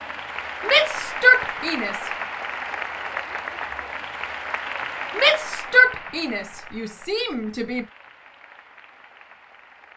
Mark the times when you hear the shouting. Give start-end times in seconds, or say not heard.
0.6-2.1, 5.2-7.8.